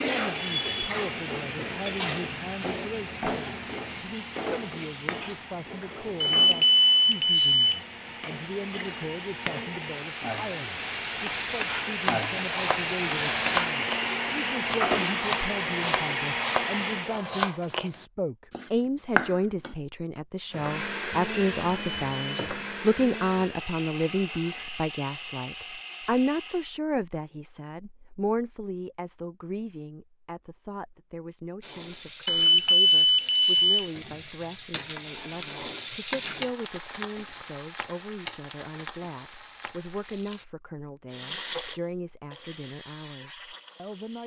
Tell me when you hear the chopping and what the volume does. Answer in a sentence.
The chopping can be heard from 12.0 to 19.8 s, getting quieter then louder.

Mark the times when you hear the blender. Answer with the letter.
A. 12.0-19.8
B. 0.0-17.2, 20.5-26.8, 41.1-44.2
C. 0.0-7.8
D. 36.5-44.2
B.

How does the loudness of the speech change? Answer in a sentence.
The loudness of the speech goes up, then down.